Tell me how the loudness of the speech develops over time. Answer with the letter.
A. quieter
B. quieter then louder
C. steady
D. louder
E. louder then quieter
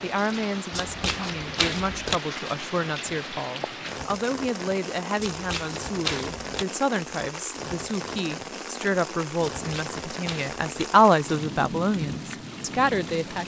D.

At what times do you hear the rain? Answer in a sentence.
You can hear the rain from 0.0 to 13.4 s.